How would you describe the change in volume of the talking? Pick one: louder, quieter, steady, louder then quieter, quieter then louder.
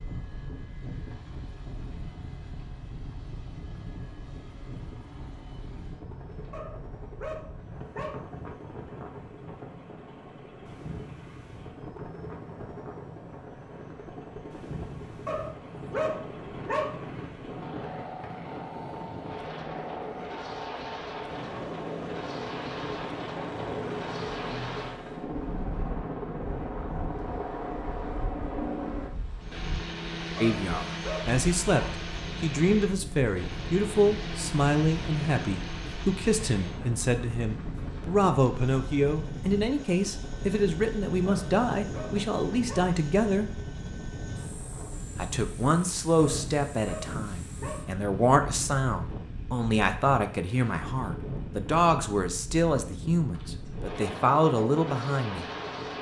steady.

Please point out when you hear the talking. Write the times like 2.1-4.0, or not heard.
30.4-43.5, 45.1-55.5.